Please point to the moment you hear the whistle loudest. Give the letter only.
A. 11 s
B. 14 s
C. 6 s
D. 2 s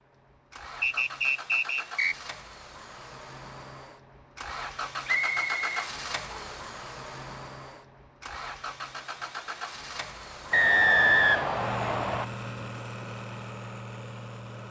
A.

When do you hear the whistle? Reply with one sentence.
You can hear the whistle from 0.8 to 2.1 s, from 5.0 to 6.7 s and from 10.5 to 12.2 s.